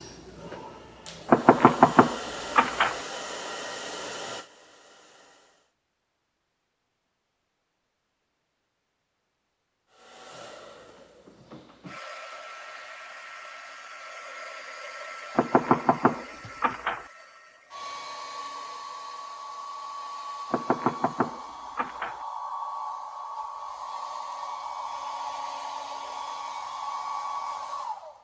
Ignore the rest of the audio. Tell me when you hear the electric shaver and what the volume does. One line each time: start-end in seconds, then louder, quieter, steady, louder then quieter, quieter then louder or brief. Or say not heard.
not heard.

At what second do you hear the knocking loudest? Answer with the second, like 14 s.
2 s.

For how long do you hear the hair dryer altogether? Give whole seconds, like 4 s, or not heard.
24 s.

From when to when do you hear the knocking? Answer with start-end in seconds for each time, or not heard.
1.2-3.0, 15.3-17.1, 20.5-22.2.